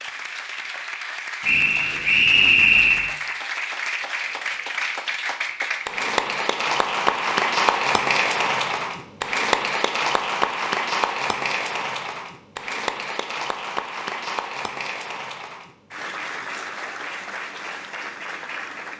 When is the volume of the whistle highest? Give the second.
3 s.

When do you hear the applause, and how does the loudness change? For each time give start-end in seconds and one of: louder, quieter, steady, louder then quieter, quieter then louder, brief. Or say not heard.
0.0-18.9 louder then quieter.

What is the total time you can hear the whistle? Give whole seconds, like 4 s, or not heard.
2 s.